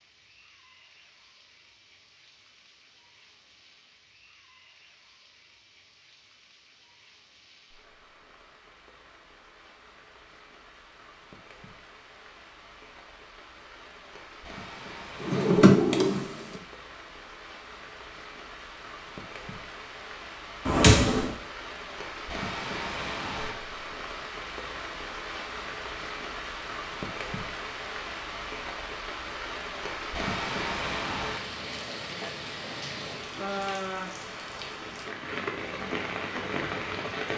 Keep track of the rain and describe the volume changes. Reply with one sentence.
The volume of the rain goes up.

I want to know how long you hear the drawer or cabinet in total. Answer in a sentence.
You can hear the drawer or cabinet for 2 seconds altogether.